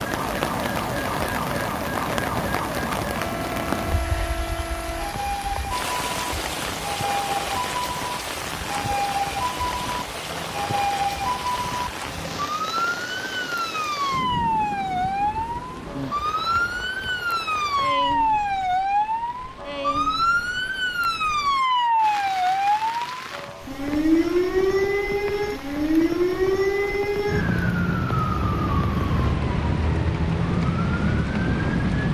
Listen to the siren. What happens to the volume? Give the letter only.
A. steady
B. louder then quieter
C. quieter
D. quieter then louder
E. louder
E.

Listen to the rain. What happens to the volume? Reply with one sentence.
The loudness of the rain goes down.